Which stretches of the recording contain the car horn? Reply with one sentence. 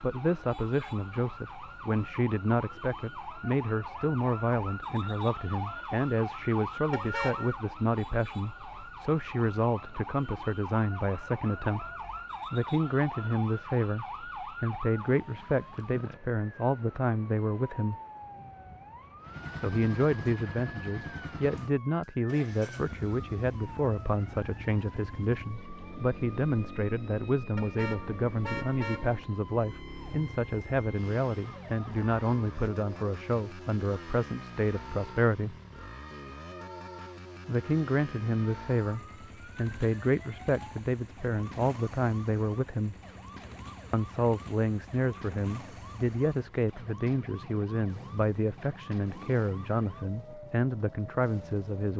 The car horn can be heard from 6.9 to 7.5 s and from 27.6 to 29.2 s.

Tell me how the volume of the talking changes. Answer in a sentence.
The volume of the talking stays about the same.